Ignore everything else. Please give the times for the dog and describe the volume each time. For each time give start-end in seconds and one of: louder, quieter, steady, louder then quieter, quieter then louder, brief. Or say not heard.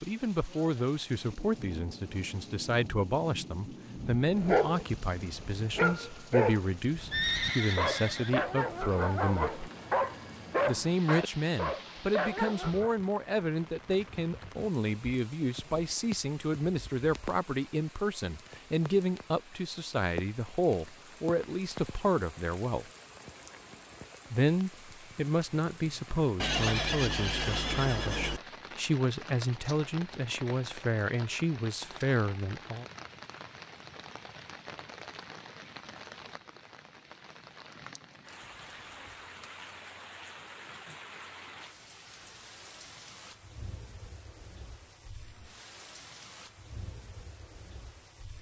4.0-12.9 steady.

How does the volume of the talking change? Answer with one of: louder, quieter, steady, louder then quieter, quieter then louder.
steady.